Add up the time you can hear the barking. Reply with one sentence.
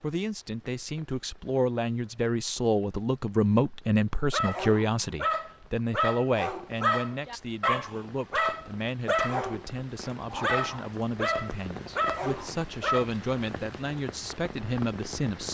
The barking can be heard for 9 seconds in total.